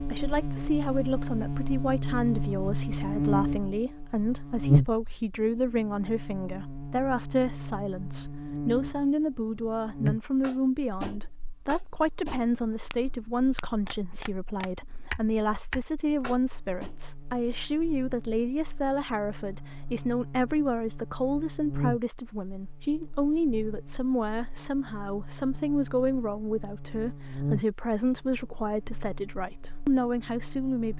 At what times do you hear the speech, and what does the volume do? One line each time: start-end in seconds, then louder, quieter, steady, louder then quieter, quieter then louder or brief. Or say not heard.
0.1-30.9 steady.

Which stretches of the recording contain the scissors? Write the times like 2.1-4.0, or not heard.
not heard.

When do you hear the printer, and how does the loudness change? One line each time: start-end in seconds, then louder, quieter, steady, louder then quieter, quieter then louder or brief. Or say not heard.
not heard.